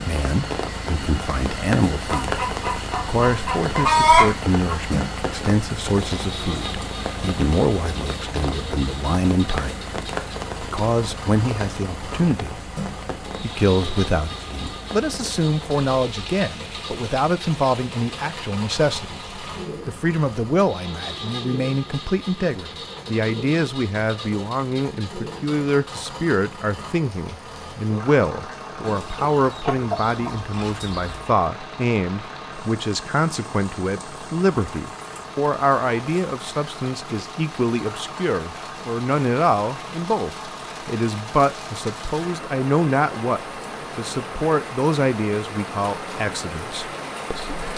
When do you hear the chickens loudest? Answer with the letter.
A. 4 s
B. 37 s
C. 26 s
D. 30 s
A.